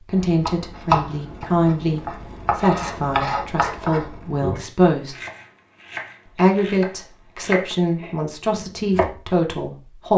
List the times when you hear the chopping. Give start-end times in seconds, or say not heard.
0.1-9.2.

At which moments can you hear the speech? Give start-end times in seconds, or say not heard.
0.0-5.2, 6.3-10.1.